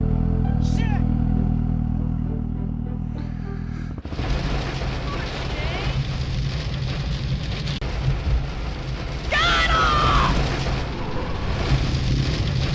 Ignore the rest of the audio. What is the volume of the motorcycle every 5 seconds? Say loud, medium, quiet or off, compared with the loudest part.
loud, off, medium.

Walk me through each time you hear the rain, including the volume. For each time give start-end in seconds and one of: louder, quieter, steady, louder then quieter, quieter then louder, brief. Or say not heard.
4.0-12.7 steady.